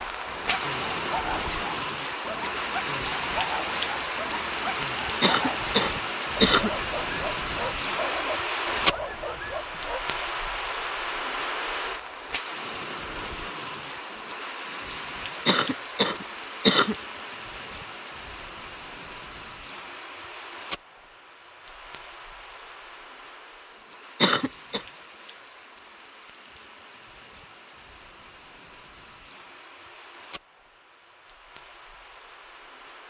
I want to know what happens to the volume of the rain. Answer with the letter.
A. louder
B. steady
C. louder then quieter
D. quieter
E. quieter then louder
D.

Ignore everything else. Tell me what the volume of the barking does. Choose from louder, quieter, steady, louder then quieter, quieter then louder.
steady.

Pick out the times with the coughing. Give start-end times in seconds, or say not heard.
5.2-6.7, 15.4-16.9, 24.2-24.8.